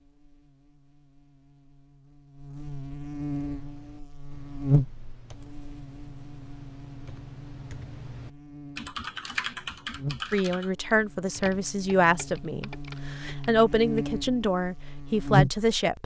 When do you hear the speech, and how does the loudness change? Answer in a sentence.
You can hear the speech from 10.3 to 16.0 s, at a steady volume.